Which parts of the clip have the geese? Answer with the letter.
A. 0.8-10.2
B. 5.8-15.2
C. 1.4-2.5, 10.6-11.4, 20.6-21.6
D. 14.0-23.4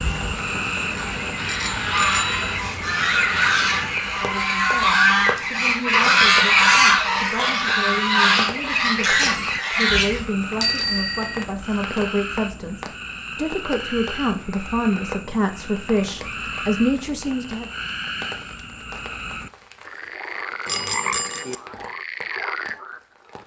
A.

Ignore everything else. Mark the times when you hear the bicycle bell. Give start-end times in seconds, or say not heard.
1.4-2.5, 10.6-11.4, 20.6-21.6.